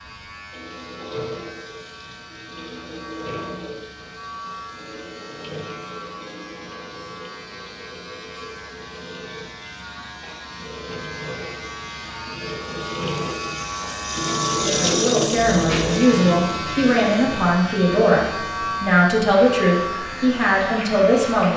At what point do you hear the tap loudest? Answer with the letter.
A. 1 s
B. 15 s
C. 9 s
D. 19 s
B.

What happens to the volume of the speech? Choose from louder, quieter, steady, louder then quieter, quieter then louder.
steady.